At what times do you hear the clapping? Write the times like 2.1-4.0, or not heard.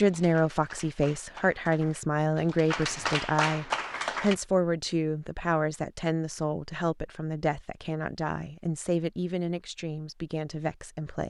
0.0-4.3.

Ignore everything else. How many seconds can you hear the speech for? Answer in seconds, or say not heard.
11 s.